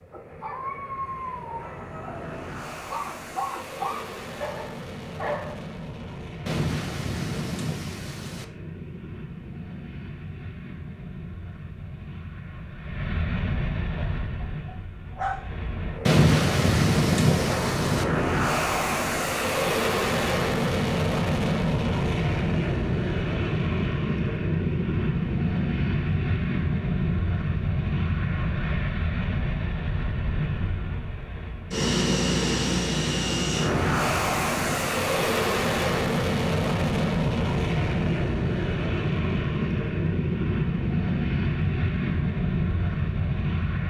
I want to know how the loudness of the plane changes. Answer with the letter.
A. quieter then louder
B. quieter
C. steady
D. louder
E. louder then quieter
D.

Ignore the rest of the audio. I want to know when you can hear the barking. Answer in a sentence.
You can hear the barking from 0.1 to 5.6 s and from 13.9 to 15.6 s.